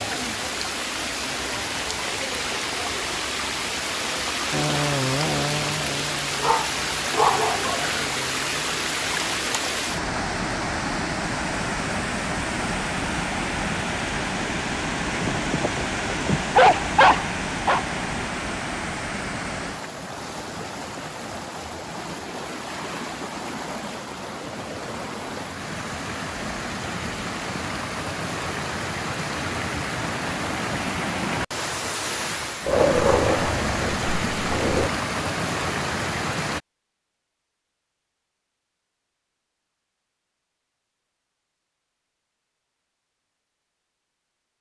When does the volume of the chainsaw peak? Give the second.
5 s.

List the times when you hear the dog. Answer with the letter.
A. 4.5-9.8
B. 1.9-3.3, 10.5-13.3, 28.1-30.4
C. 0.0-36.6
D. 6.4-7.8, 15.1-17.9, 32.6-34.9
D.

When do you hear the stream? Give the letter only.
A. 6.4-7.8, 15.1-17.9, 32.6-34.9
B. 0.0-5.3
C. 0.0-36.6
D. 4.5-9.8
C.